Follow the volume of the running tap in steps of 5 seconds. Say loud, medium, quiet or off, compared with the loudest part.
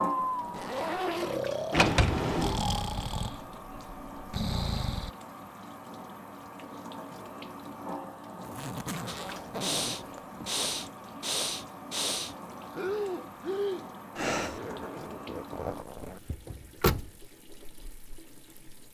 loud, loud, loud, medium.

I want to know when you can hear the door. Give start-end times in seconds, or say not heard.
1.7-2.6, 16.3-17.1.